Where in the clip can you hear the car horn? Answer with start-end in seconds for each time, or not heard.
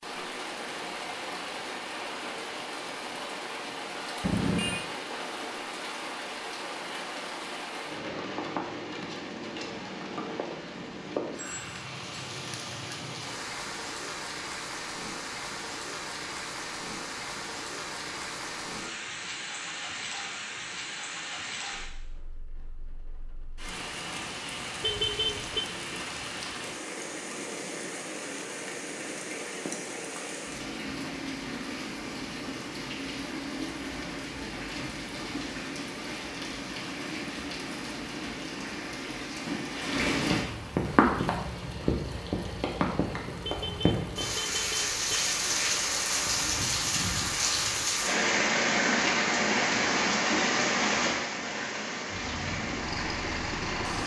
4.2-4.8, 24.8-25.6, 43.5-45.2.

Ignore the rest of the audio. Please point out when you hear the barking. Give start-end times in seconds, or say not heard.
not heard.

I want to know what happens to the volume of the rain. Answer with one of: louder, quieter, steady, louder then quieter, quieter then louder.
louder.